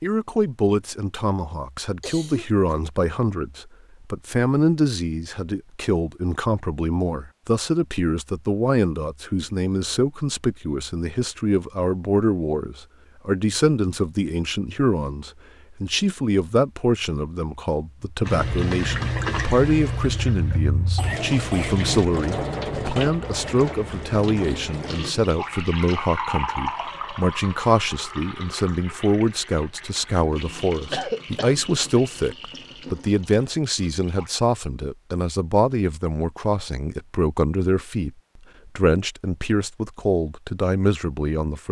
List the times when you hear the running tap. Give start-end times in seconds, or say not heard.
18.2-34.4.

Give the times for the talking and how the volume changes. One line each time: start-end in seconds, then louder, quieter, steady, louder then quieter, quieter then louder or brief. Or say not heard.
0.0-41.6 steady.